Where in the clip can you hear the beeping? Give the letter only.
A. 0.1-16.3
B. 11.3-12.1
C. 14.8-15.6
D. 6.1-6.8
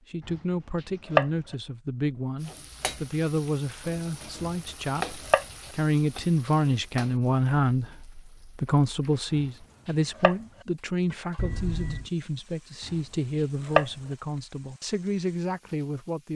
B.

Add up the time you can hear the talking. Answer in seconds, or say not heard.
16 s.